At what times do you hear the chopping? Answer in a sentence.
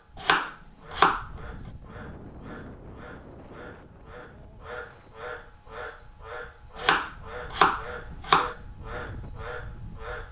The chopping can be heard from 0.2 to 1.2 s and from 6.8 to 8.6 s.